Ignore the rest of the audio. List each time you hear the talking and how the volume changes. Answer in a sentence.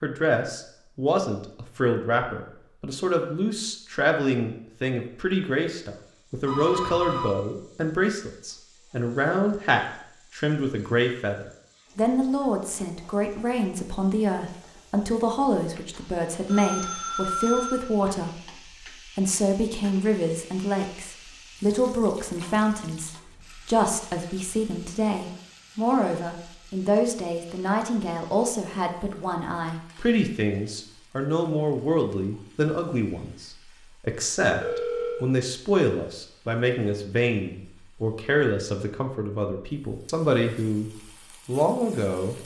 The talking can be heard from 0.0 to 42.4 s, at a steady volume.